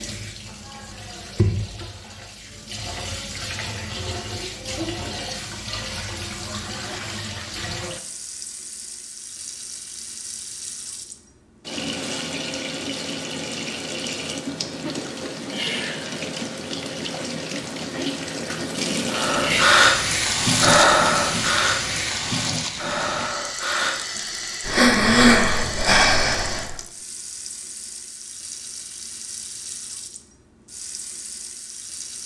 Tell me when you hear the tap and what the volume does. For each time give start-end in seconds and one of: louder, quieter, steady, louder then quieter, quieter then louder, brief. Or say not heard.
0.0-32.2 louder then quieter.